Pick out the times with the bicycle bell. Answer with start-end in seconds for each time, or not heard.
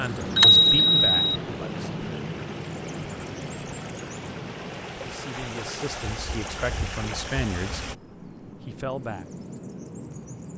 0.3-1.4.